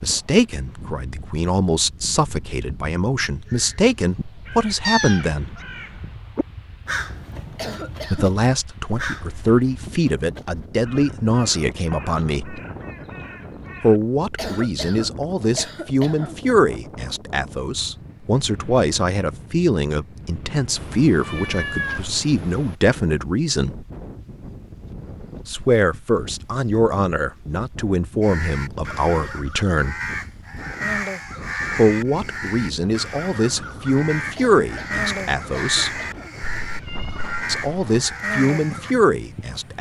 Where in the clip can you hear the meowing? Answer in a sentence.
The meowing can be heard from 4.8 to 5.6 s, from 20.8 to 22.8 s and from 36.6 to 38.0 s.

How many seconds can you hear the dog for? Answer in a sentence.
The dog can't be heard in this clip.